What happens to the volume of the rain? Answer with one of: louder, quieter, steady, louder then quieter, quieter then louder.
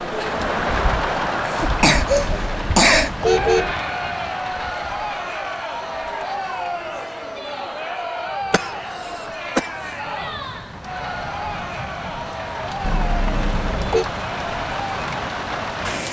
quieter then louder.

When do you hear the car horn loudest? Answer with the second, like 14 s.
3 s.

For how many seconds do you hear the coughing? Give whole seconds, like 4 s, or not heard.
3 s.